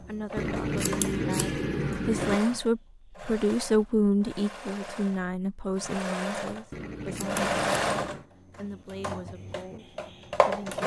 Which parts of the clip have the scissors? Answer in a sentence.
You can hear the scissors from 0.3 to 2.4 s and from 6.7 to 8.2 s.